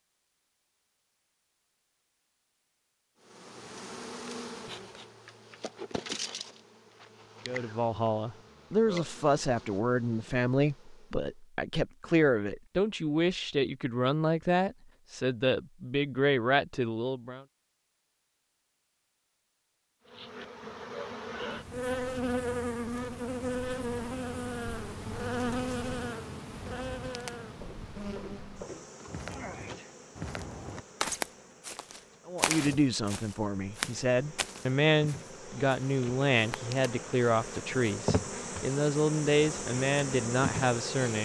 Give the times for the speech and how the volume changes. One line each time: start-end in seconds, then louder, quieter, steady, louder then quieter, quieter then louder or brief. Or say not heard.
7.5-17.4 steady
32.2-41.1 steady.